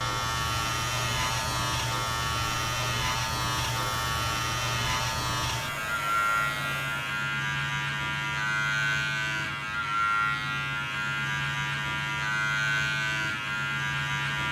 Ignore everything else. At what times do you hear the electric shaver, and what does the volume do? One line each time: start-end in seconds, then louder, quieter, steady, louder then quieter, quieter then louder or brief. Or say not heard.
0.0-14.4 steady.